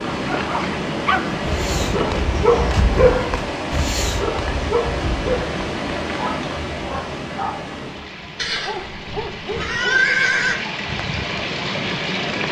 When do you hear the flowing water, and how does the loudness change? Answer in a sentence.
You can hear the flowing water from 0.0 to 12.4 s, getting quieter then louder.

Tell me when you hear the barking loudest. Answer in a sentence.
The loudest moment of the barking is at 3 seconds.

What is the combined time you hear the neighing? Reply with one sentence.
The neighing can be heard for 2 seconds in total.